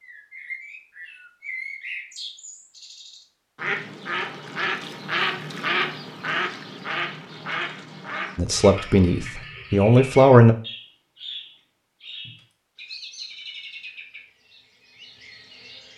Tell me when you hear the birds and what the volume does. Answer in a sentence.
The birds can be heard from 0.0 to 15.9 s, getting louder then quieter.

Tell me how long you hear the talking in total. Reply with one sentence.
The talking can be heard for 2 seconds in total.